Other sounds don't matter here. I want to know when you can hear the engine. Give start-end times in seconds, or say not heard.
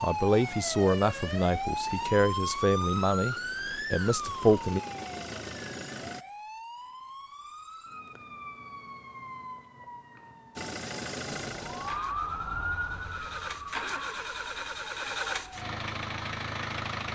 0.0-6.2, 10.6-17.0.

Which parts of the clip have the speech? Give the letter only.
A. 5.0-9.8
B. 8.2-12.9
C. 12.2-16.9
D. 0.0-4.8
D.